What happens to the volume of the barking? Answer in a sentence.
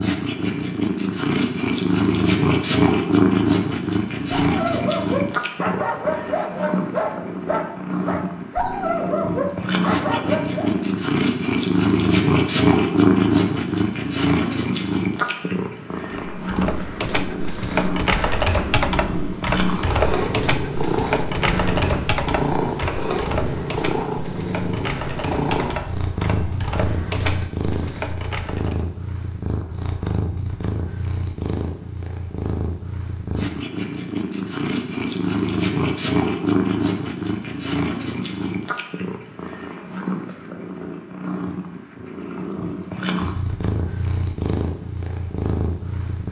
The volume of the barking stays about the same.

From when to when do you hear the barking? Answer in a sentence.
The barking can be heard from 4.3 to 10.8 s.